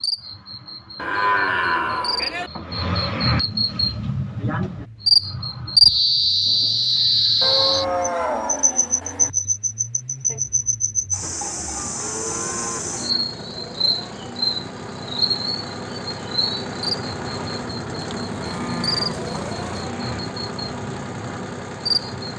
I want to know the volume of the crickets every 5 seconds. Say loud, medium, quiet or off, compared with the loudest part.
medium, loud, medium, medium, medium.